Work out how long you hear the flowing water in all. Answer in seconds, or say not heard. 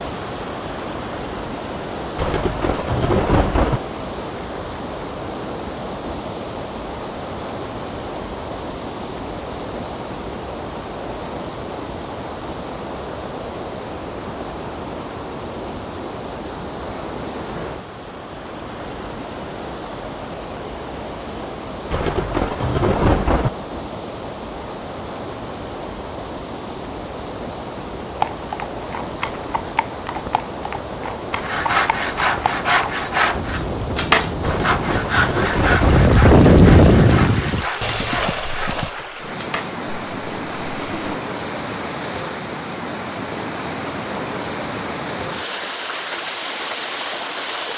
48 s.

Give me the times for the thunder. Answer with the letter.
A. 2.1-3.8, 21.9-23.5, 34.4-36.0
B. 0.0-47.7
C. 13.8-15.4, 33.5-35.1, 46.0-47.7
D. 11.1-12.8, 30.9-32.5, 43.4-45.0
A.